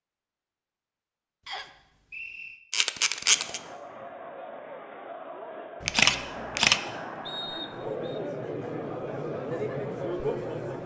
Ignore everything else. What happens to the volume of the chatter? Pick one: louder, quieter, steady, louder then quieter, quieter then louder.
louder.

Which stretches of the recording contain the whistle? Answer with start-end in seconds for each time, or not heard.
1.4-2.6, 7.2-8.2.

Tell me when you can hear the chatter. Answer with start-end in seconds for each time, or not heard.
3.1-10.8.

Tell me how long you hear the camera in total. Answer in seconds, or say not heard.
2 s.